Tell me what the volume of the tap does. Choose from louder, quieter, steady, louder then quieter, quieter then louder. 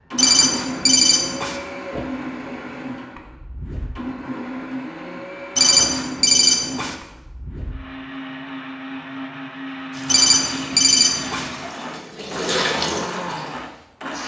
louder then quieter.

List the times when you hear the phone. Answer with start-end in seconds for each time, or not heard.
0.1-1.6, 5.5-7.0, 10.1-11.5.